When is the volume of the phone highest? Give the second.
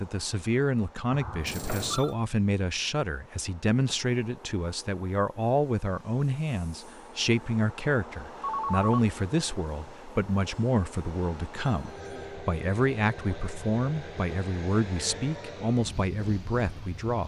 9 s.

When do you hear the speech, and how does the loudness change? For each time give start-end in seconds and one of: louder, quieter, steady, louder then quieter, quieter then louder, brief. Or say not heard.
0.0-17.2 steady.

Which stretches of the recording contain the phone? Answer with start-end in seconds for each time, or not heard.
1.1-2.1, 8.4-9.1, 11.6-12.3.